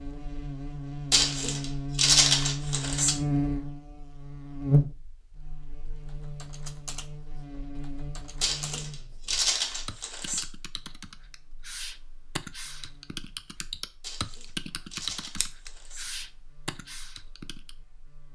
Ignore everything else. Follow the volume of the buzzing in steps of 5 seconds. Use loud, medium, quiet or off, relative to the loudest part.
loud, quiet, quiet, quiet.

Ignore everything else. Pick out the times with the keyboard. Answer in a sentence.
You can hear the keyboard from 6.0 to 17.8 s.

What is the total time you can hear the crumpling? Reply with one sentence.
The crumpling can be heard for 6 seconds in total.